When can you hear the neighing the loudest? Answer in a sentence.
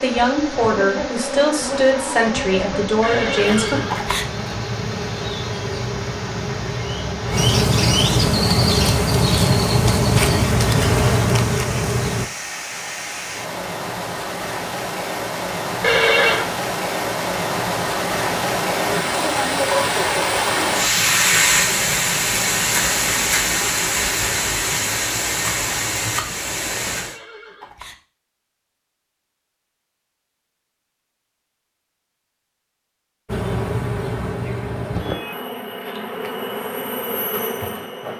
The loudest moment of the neighing is at 16 seconds.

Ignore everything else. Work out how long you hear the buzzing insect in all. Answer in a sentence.
The buzzing insect can be heard for 17 seconds in total.